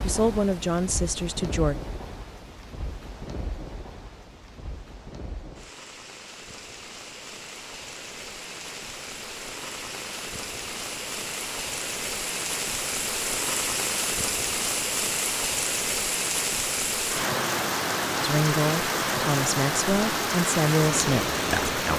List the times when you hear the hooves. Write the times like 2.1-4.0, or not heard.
not heard.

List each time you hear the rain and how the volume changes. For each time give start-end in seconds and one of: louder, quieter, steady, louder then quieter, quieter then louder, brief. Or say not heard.
0.0-21.9 louder.